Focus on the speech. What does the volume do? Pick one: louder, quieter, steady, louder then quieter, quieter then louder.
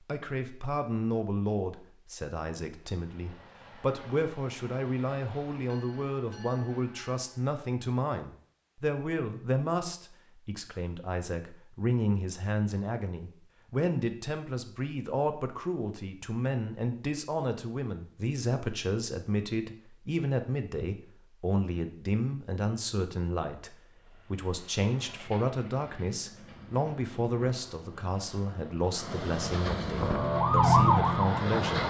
steady.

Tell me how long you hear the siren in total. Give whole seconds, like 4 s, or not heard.
2 s.